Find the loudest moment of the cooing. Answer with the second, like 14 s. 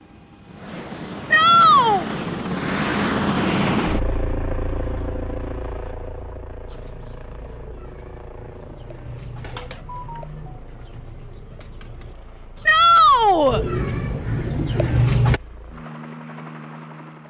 15 s.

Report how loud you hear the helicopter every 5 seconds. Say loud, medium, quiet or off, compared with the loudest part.
loud, quiet, quiet, quiet.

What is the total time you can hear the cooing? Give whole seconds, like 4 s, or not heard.
9 s.